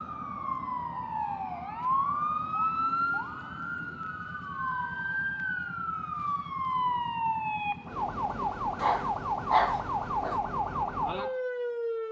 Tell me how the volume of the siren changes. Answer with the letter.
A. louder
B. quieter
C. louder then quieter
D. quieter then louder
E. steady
E.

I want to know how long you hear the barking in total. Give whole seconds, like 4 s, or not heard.
2 s.